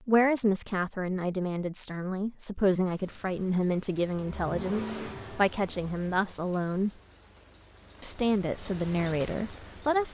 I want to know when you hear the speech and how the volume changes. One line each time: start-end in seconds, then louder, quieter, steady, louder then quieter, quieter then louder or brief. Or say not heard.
0.1-6.9 steady
8.0-10.0 brief.